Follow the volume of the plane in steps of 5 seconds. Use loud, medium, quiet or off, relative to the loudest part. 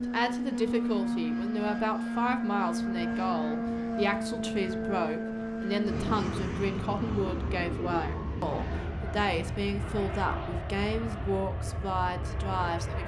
loud, loud, medium.